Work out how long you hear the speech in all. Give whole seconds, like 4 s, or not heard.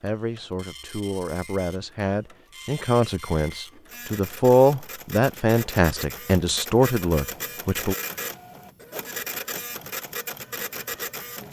8 s.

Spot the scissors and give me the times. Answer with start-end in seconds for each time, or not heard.
not heard.